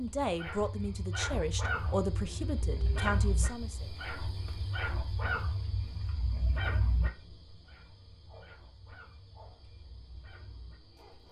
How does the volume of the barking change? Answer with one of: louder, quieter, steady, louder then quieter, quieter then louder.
quieter.